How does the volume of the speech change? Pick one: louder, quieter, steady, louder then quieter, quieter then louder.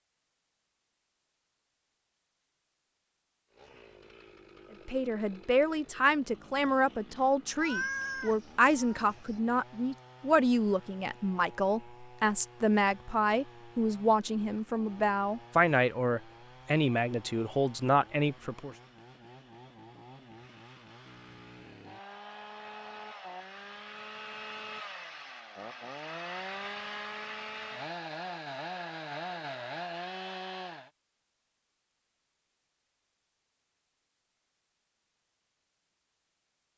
steady.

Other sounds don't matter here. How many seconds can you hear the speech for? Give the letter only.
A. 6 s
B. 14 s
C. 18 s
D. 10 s
B.